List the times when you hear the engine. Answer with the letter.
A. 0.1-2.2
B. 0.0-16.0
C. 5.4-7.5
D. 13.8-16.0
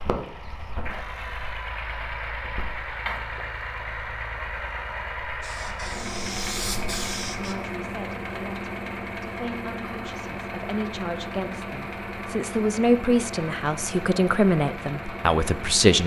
B.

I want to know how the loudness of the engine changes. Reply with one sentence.
The loudness of the engine stays about the same.